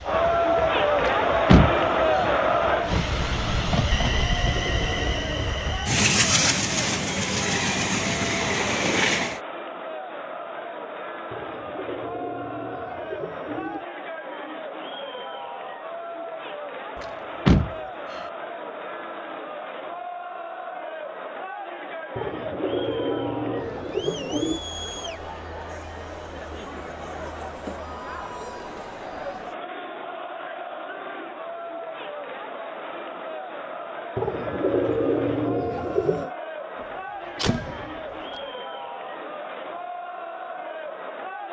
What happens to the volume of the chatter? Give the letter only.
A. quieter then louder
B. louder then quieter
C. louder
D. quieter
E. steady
D.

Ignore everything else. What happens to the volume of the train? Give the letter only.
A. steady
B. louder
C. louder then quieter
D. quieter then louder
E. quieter
B.